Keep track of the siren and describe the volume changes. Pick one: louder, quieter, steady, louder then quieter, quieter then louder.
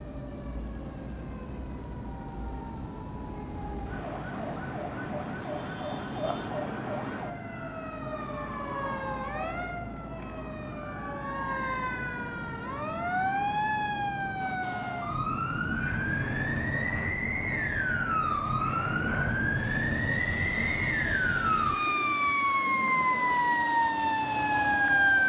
louder.